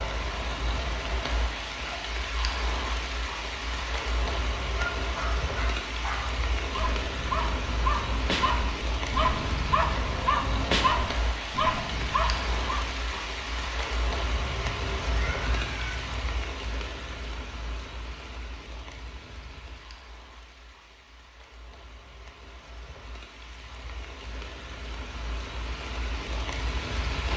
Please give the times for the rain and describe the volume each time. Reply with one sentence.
You can hear the rain from 0.0 to 27.3 s, getting quieter.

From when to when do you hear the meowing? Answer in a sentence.
The meowing can be heard from 14.3 to 16.3 s.